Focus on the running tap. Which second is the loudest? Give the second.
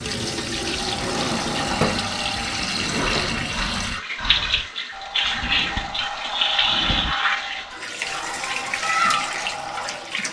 7 s.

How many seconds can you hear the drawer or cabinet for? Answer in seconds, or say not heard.
5 s.